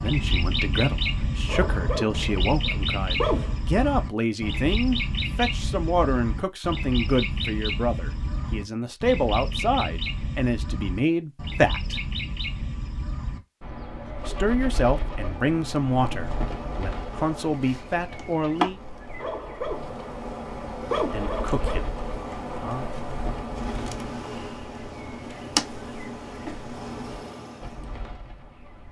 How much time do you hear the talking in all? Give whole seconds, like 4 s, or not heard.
18 s.